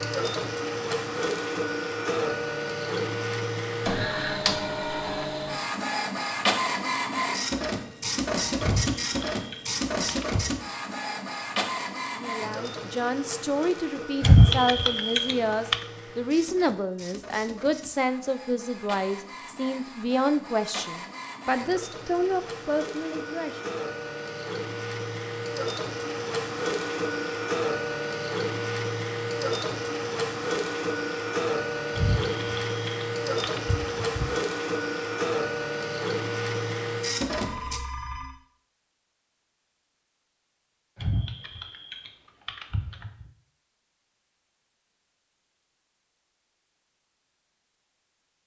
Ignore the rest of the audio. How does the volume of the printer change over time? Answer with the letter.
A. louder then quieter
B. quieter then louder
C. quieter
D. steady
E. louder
B.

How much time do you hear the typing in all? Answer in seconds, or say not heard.
8 s.